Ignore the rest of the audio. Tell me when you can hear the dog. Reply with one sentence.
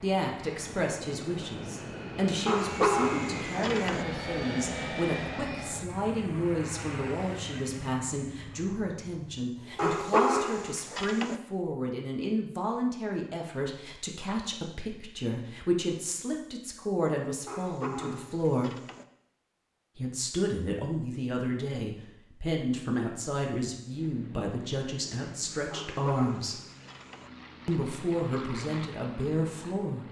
You can hear the dog from 2.5 to 4.0 s, from 9.8 to 11.3 s, from 17.4 to 19.1 s and from 25.7 to 27.3 s.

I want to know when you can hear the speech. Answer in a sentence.
The speech can be heard from 0.0 to 18.8 s, from 19.9 to 26.6 s and from 27.6 to 30.0 s.